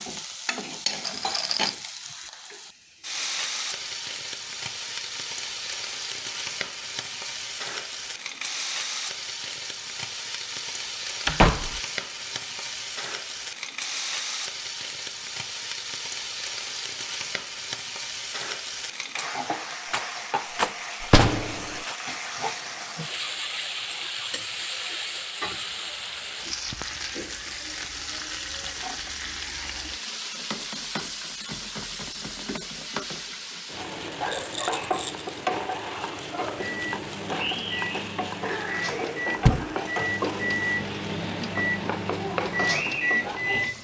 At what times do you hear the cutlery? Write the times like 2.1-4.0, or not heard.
not heard.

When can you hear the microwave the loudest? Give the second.
43 s.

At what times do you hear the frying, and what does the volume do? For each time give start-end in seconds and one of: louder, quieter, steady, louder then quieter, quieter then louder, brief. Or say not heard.
0.0-43.8 steady.